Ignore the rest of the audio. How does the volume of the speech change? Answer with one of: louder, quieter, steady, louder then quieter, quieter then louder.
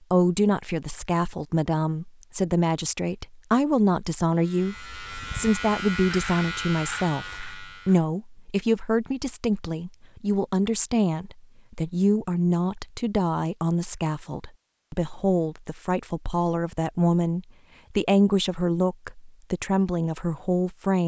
steady.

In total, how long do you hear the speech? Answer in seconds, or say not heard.
21 s.